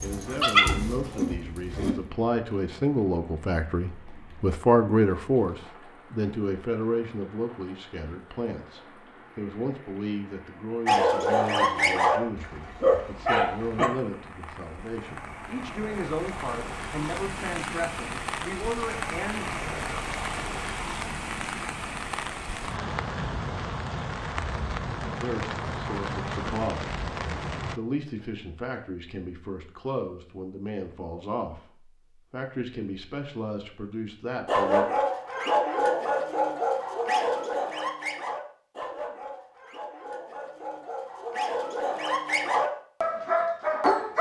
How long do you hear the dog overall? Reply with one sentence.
You can hear the dog for 15 seconds altogether.